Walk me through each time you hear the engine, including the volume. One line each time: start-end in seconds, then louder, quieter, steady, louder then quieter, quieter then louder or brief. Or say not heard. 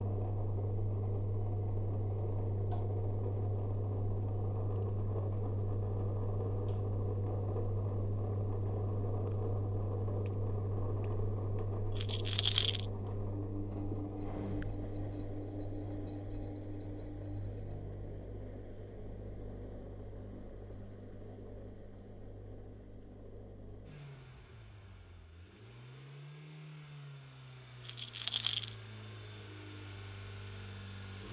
0.0-31.2 quieter.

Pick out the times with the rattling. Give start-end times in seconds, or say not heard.
11.9-12.8, 27.8-28.7.